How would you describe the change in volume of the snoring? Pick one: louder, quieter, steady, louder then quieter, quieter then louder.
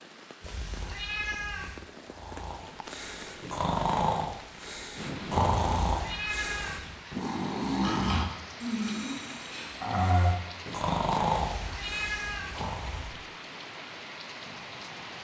steady.